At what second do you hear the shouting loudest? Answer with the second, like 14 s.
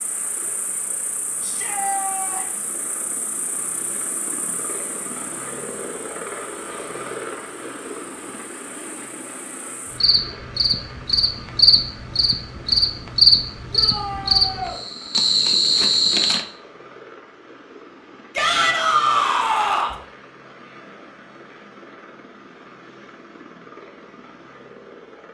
19 s.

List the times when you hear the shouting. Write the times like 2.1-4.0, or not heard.
1.4-2.6, 13.7-14.8, 18.4-19.9.